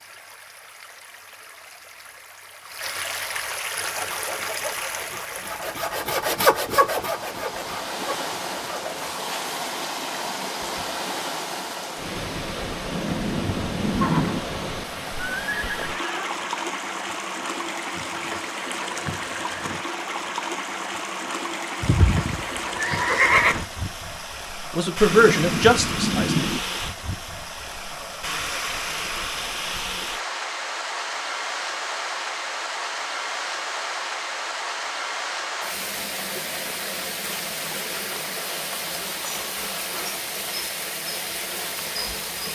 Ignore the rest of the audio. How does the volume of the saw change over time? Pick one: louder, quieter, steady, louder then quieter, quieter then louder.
louder then quieter.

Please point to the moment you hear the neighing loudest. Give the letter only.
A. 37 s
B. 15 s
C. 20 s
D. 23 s
D.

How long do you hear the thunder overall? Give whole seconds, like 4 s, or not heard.
3 s.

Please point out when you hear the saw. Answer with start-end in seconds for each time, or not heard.
3.8-9.2.